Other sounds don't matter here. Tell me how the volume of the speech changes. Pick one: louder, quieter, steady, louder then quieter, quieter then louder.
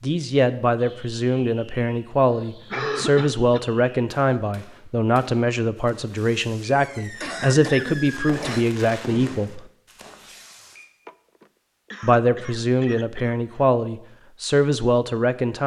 steady.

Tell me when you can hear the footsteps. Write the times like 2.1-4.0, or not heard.
not heard.